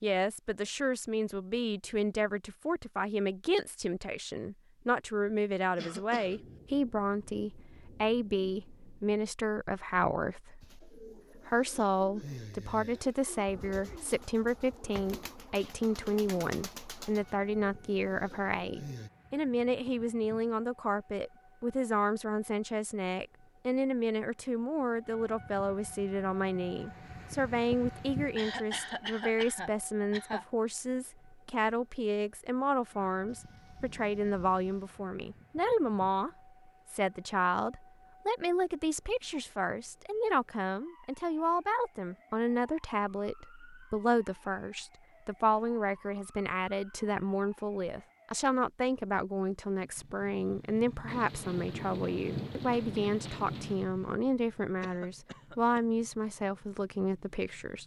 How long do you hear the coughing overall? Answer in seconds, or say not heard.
4 s.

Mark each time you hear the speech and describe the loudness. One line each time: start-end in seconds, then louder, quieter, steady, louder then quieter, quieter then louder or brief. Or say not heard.
0.0-57.8 steady.